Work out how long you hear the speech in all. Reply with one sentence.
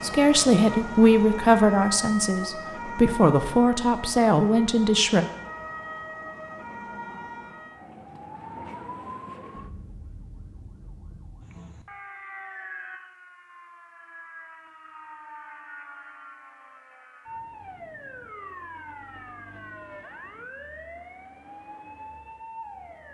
The speech can be heard for 5 seconds in total.